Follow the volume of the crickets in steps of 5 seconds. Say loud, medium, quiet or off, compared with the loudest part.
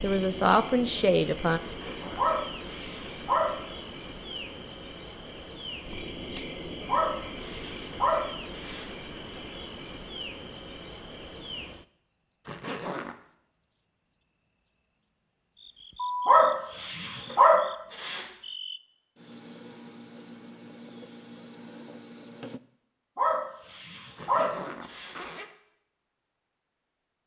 loud, loud, loud, loud, loud, off.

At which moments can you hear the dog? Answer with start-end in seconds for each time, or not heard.
2.1-3.5, 6.8-8.8, 16.2-18.2, 23.1-25.1.